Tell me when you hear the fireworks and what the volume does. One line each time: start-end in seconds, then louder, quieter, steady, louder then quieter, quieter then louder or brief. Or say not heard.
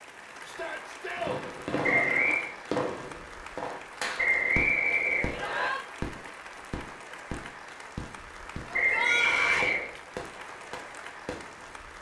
1.1-8.8 quieter
9.5-11.8 brief.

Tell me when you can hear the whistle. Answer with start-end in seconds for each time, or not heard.
1.8-2.5, 4.2-5.7, 8.7-9.9.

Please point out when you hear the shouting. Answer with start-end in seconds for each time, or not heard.
0.4-2.4, 5.3-5.8, 8.8-9.8.